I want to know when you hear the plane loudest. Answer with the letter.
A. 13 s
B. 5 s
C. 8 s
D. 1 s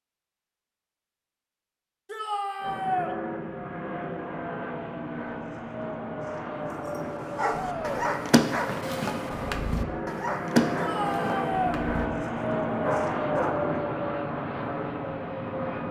A.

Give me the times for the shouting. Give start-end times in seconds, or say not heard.
2.0-3.1, 7.5-8.1, 10.8-11.8.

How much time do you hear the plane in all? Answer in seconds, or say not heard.
13 s.